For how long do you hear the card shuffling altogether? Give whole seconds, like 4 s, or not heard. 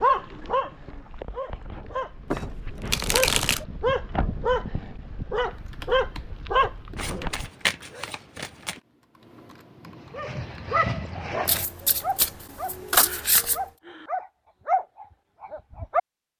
5 s.